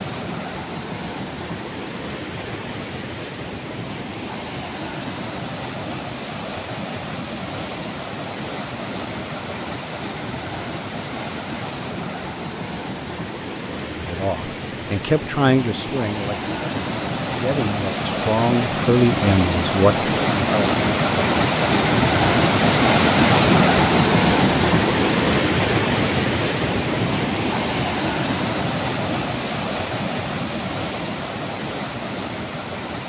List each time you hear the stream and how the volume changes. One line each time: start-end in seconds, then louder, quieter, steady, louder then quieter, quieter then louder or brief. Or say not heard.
0.0-33.0 louder then quieter.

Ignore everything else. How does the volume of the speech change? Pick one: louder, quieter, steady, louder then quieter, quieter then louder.
quieter then louder.